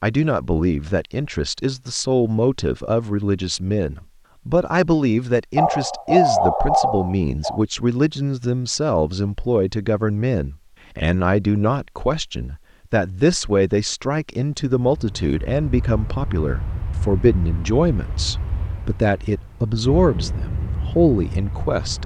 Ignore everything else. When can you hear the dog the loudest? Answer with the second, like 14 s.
6 s.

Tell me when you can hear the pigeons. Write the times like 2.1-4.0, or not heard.
not heard.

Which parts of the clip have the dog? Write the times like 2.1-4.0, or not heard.
5.5-7.6.